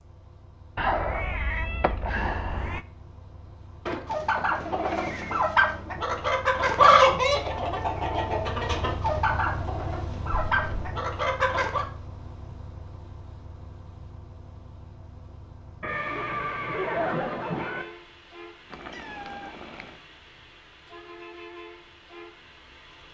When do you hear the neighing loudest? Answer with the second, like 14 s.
17 s.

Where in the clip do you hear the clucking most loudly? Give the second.
7 s.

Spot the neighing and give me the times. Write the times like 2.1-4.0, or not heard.
3.9-5.4, 15.8-17.9.